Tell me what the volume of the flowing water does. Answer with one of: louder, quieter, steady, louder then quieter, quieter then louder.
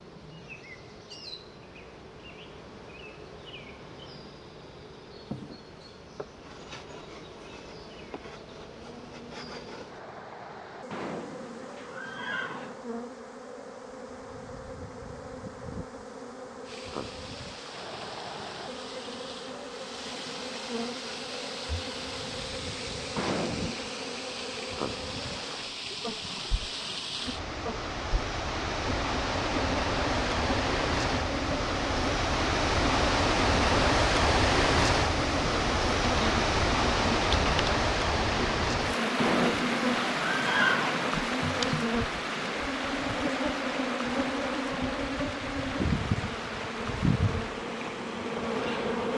louder then quieter.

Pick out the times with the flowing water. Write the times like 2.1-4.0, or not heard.
16.6-49.1.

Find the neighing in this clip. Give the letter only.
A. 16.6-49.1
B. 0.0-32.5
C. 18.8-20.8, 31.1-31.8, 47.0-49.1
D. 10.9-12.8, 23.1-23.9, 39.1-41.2
D.